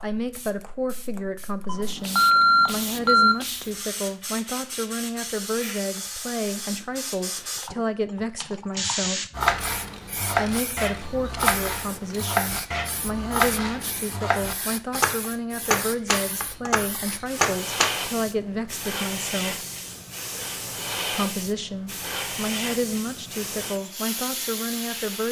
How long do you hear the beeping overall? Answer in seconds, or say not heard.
2 s.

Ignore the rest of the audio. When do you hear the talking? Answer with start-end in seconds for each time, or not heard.
0.0-9.2, 10.3-19.6, 21.1-25.2.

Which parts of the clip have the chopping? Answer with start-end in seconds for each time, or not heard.
9.3-17.9.